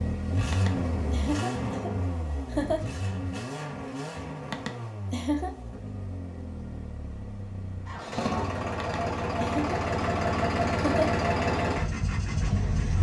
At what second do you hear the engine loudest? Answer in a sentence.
The loudest moment of the engine is at 11 seconds.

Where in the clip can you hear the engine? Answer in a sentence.
You can hear the engine from 0.0 to 12.9 s.